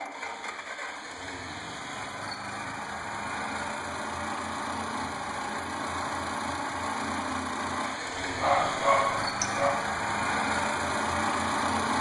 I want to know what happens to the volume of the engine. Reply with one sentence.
The loudness of the engine goes up.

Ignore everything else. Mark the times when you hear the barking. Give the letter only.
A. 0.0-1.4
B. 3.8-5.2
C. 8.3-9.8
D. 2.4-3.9
C.